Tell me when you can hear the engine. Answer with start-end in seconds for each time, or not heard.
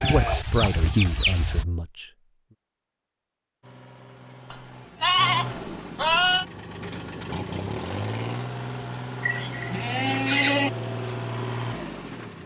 3.6-12.4.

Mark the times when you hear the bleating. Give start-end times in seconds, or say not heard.
0.0-1.6, 4.5-6.5, 9.2-10.7.